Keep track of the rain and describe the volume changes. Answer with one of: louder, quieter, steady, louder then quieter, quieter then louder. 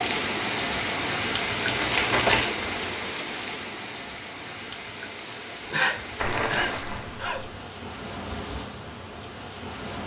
quieter.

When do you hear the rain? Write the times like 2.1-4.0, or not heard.
0.0-10.0.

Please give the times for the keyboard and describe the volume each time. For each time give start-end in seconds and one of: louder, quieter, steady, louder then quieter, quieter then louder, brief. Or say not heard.
not heard.